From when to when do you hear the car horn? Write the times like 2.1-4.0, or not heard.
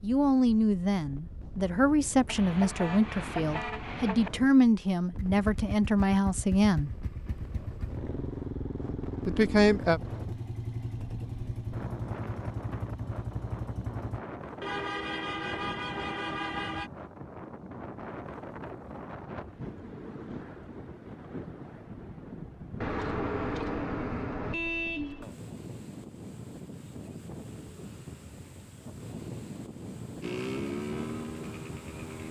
2.2-4.3, 14.6-16.9, 22.8-25.3.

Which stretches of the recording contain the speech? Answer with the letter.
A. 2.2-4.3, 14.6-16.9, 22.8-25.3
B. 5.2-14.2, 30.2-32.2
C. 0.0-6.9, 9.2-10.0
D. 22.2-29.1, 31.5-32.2
C.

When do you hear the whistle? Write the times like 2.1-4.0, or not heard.
not heard.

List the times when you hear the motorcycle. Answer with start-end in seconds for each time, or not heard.
5.2-14.2, 30.2-32.2.